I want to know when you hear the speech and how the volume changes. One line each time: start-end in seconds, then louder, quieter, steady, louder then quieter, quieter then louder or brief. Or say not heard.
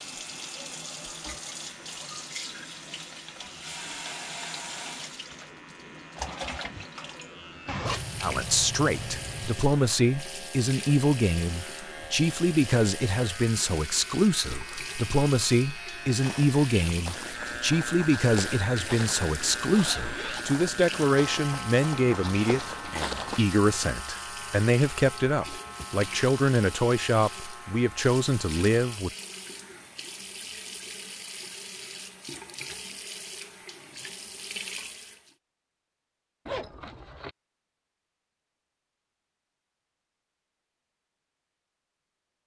8.2-29.1 steady.